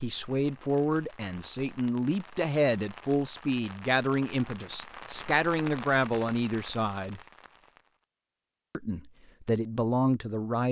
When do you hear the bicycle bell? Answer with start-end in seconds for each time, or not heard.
not heard.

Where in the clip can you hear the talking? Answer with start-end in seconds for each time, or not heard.
0.0-7.2, 8.8-10.6.